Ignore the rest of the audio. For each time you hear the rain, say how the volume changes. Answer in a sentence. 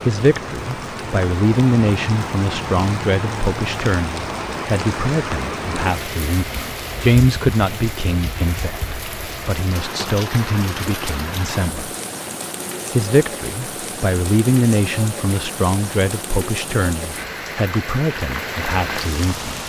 The rain can be heard from 0.0 to 19.6 s, at a steady volume.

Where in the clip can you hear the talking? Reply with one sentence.
You can hear the talking from 0.1 to 11.9 s and from 12.9 to 19.6 s.